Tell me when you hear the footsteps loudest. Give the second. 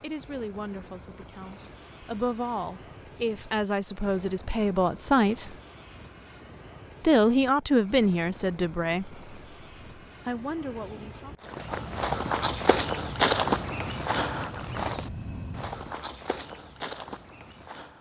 13 s.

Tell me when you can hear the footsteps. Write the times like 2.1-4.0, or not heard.
11.4-17.9.